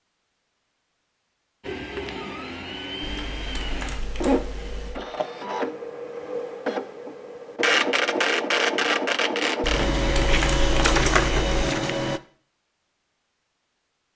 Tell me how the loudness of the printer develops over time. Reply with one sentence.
The loudness of the printer goes up.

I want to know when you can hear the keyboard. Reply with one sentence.
You can hear the keyboard from 3.0 to 5.0 s and from 9.6 to 11.6 s.